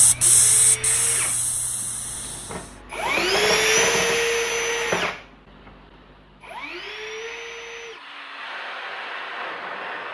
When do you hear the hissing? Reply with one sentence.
You can hear the hissing from 0.0 to 2.8 s.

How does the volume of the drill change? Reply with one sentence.
The volume of the drill goes up, then down.